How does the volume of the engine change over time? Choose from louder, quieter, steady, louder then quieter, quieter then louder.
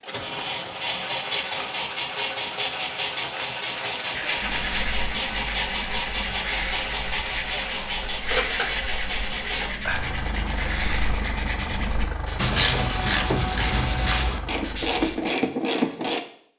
quieter.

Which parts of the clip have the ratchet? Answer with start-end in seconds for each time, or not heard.
4.4-16.2.